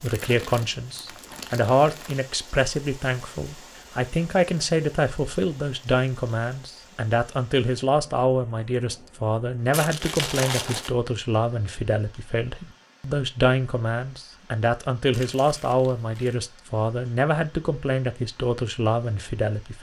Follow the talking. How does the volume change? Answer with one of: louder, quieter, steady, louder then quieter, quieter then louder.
steady.